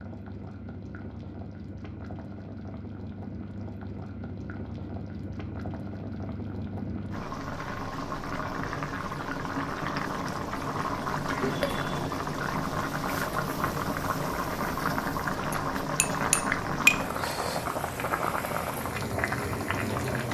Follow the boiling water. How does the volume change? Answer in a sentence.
The volume of the boiling water goes up.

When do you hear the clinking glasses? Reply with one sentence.
The clinking glasses can be heard from 15.5 to 17.1 s.